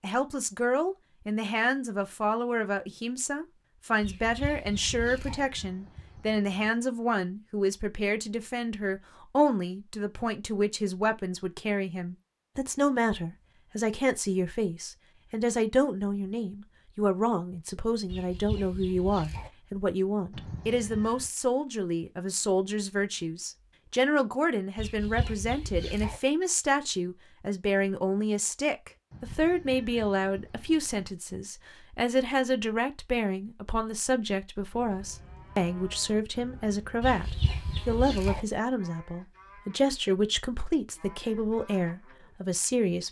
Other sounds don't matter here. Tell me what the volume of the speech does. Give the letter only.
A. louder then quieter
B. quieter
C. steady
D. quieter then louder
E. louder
C.